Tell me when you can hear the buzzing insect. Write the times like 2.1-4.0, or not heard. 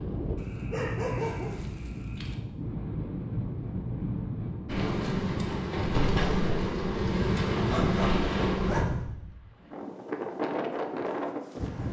4.7-8.8.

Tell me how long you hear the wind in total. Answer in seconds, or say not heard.
12 s.